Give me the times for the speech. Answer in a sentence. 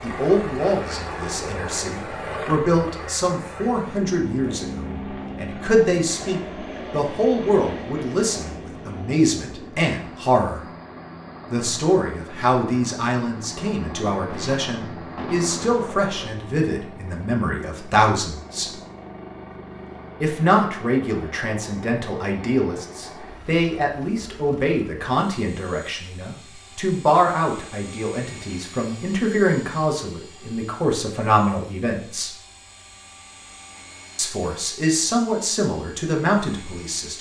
You can hear the speech from 0.0 to 10.6 s, from 11.5 to 18.7 s, from 20.2 to 32.3 s and from 34.1 to 37.1 s.